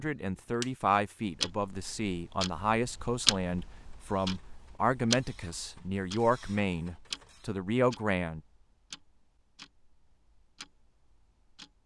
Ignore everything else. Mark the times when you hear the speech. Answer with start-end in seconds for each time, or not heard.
0.0-8.4.